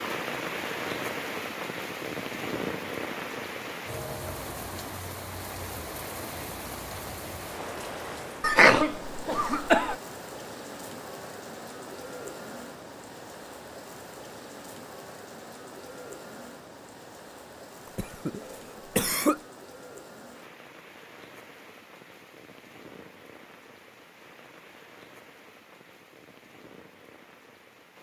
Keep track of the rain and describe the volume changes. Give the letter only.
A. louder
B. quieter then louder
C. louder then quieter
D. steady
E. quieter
E.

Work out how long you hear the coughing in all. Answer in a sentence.
The coughing can be heard for 3 seconds in total.